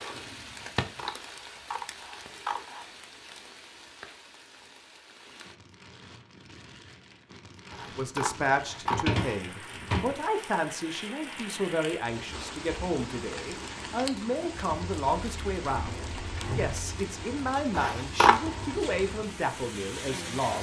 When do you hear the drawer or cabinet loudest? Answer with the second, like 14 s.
9 s.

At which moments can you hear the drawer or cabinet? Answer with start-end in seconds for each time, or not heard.
8.8-10.2, 15.7-16.8.